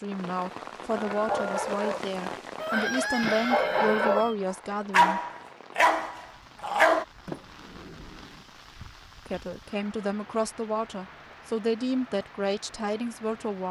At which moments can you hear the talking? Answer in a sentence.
You can hear the talking from 0.0 to 5.2 s and from 9.2 to 13.6 s.